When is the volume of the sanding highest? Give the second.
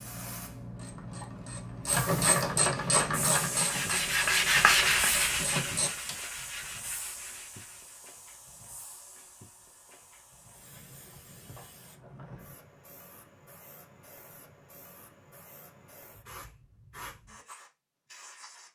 5 s.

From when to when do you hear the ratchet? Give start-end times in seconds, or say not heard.
0.7-6.2.